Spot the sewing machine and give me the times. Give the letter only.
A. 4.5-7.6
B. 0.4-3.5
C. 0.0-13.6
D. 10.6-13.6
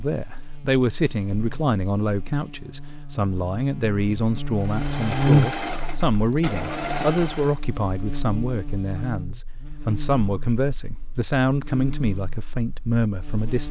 A.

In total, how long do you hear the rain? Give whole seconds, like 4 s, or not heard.
not heard.